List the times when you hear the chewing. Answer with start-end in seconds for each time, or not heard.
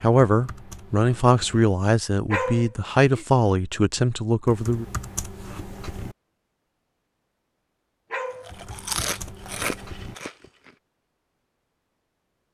8.3-10.8.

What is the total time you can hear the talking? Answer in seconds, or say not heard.
5 s.